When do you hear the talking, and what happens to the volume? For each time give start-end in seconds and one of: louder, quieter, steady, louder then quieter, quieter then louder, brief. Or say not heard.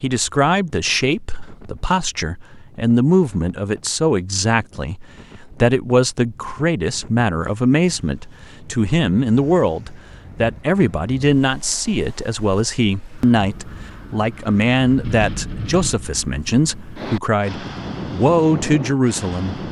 0.0-19.6 steady.